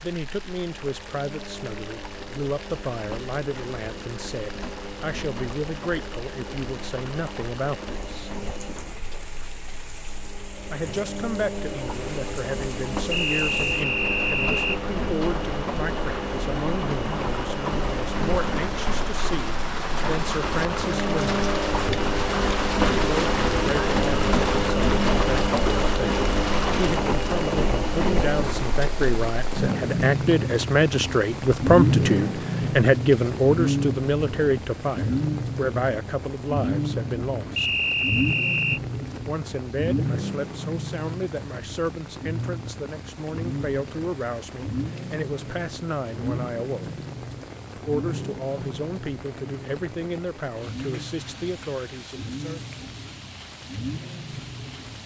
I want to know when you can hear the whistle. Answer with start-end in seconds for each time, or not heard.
13.1-14.8, 37.5-38.8.